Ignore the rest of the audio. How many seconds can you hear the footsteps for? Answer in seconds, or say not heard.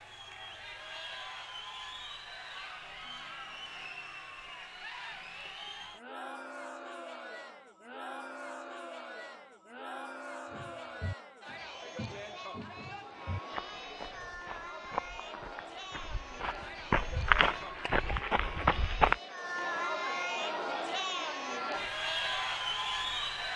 9 s.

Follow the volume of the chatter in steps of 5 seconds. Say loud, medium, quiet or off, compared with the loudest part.
medium, medium, medium, medium, loud.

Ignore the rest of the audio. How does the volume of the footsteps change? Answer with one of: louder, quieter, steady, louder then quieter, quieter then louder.
louder.